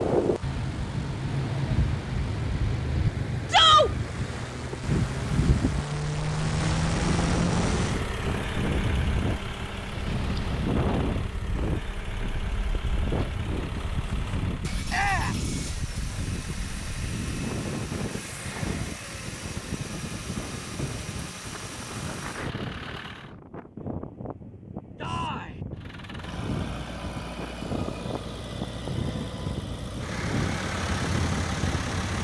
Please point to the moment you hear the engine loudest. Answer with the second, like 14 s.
7 s.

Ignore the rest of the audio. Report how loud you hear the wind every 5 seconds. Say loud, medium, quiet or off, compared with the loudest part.
loud, loud, loud, medium, medium, medium, loud.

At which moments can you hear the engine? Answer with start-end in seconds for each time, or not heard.
0.0-23.4, 25.8-32.1.